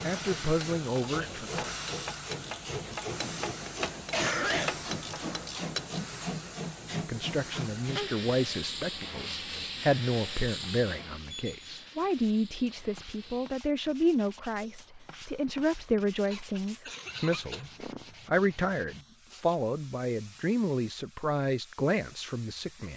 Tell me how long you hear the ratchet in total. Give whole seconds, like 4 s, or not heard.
6 s.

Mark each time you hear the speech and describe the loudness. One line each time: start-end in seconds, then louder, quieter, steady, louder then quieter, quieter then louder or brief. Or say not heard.
0.0-1.7 brief
6.9-22.9 steady.